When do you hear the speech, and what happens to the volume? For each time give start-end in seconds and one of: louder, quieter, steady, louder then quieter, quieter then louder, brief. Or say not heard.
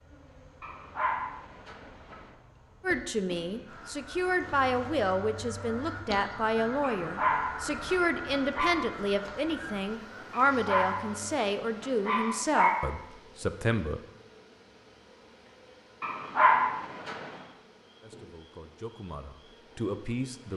2.8-14.0 steady
18.0-20.5 brief.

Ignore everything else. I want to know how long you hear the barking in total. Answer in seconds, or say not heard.
7 s.